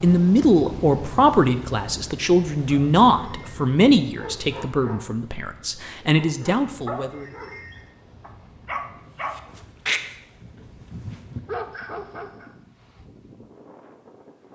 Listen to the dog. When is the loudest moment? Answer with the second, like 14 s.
10 s.